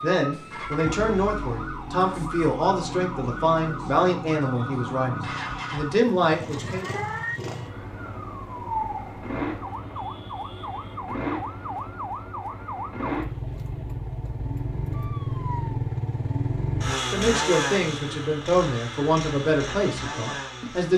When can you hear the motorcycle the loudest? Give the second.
17 s.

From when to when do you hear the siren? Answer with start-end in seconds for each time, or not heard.
0.0-15.8.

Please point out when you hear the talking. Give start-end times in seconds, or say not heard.
0.0-6.8, 17.1-20.9.